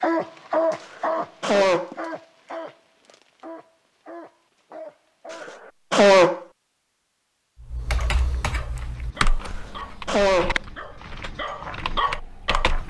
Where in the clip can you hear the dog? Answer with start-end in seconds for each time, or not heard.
0.0-5.5, 8.0-12.8.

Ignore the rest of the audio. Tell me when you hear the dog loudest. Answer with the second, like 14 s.
1 s.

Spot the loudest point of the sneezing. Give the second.
6 s.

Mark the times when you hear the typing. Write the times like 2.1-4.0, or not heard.
7.6-12.8.